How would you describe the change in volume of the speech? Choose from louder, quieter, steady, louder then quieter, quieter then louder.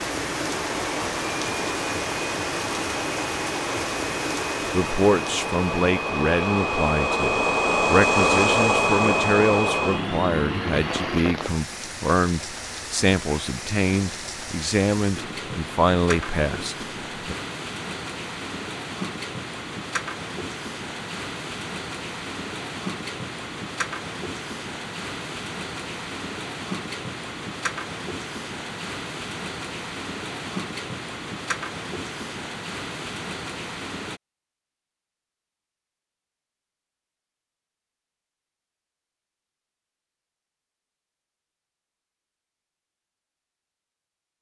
steady.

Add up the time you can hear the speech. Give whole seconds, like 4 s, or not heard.
13 s.